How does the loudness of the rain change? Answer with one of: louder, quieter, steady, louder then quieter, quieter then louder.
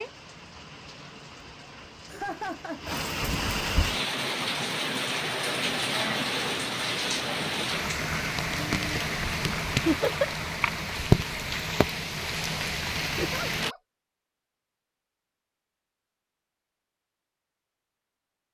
louder.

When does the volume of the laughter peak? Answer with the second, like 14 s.
10 s.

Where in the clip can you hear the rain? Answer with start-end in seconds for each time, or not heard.
0.0-13.8.